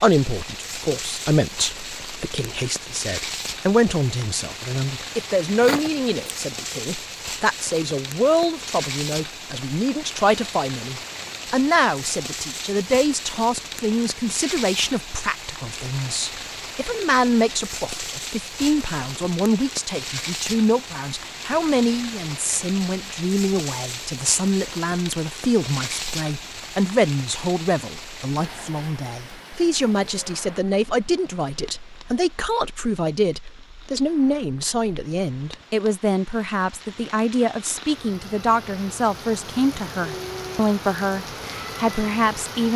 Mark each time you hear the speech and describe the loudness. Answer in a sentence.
You can hear the speech from 0.0 to 42.7 s, at a steady volume.